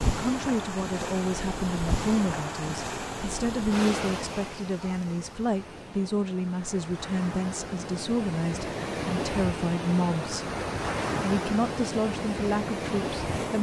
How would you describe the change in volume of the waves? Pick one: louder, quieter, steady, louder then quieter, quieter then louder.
quieter then louder.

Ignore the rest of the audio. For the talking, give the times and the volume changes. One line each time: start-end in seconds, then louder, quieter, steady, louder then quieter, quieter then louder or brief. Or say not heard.
0.1-10.4 steady
11.2-13.5 brief.